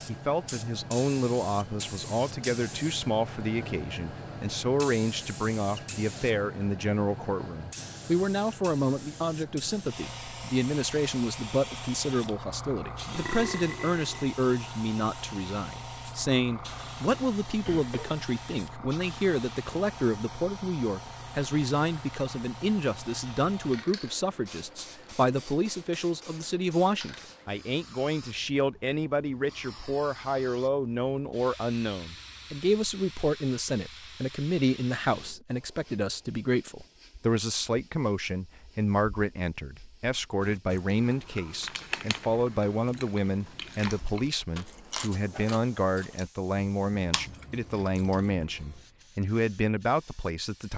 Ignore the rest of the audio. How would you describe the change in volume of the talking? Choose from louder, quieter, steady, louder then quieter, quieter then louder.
steady.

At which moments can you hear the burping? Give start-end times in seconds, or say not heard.
13.1-14.3.